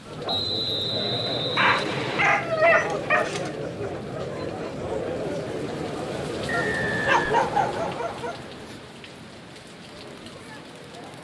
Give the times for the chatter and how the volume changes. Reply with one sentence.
The chatter can be heard from 0.0 to 11.2 s, getting quieter.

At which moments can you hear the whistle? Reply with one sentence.
You can hear the whistle from 0.2 to 2.2 s and from 6.5 to 8.2 s.